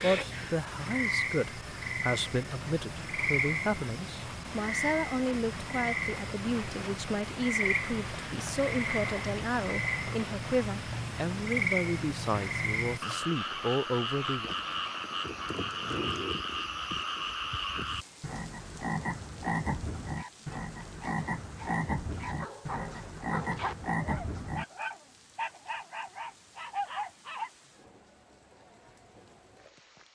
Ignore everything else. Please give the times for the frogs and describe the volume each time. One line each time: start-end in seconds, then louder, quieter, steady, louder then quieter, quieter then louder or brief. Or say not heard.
0.0-24.6 steady.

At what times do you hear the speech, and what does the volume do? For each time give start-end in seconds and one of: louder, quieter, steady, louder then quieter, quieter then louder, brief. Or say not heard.
0.0-14.5 steady.